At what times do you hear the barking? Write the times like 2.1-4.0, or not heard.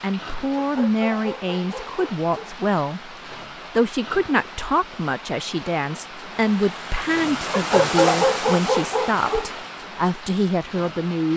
0.6-2.5, 7.5-9.5.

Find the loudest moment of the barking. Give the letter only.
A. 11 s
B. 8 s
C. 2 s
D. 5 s
B.